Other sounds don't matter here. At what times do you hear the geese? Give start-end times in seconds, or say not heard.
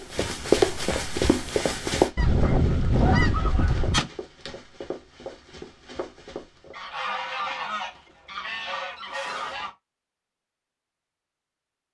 2.1-4.1, 6.7-9.8.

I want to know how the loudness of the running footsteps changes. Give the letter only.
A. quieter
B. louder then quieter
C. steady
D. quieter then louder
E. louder
A.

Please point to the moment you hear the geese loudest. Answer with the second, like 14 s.
3 s.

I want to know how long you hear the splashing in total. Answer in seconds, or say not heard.
not heard.